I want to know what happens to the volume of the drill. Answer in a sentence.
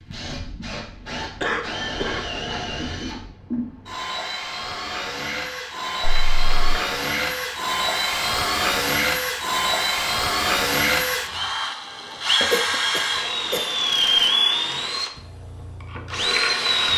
The loudness of the drill goes up.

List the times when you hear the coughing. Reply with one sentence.
You can hear the coughing from 1.4 to 2.6 s, from 6.0 to 6.8 s and from 12.5 to 14.2 s.